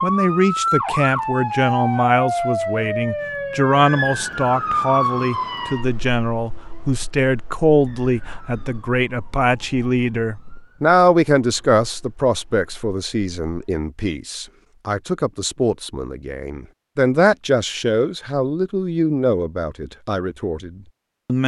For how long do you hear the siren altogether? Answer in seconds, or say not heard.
14 s.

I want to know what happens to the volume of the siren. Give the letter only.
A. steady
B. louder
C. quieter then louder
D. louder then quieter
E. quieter
E.